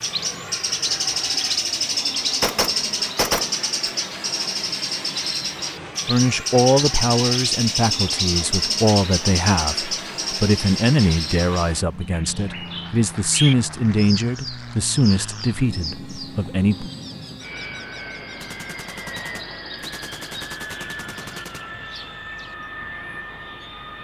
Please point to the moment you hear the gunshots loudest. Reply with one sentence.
The volume of the gunshots peaks at 3 seconds.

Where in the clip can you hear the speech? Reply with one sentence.
The speech can be heard from 6.0 to 16.9 s.